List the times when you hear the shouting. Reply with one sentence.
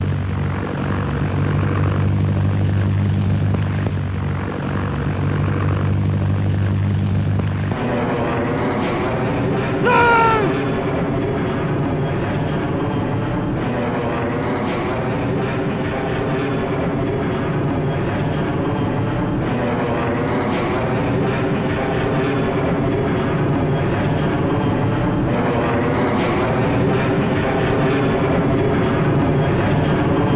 You can hear the shouting from 9.8 to 10.6 s.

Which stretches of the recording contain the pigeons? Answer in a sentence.
The pigeons can't be heard in this clip.